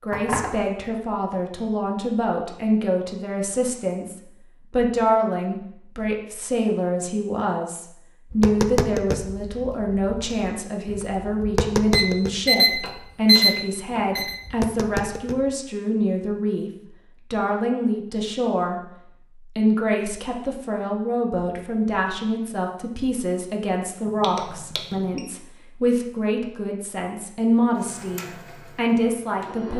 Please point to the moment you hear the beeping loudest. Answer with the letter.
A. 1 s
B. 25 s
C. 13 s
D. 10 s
C.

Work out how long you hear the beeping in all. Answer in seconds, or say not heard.
4 s.